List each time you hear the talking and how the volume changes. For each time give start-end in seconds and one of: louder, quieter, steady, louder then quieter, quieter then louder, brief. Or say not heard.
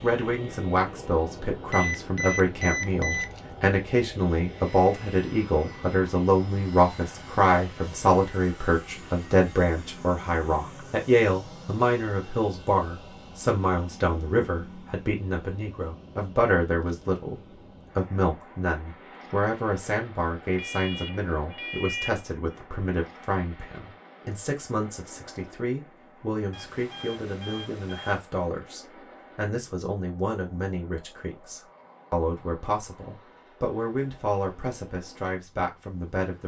0.0-36.4 quieter.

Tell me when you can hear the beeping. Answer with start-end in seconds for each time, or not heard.
1.7-3.2, 20.5-22.2, 26.5-28.2.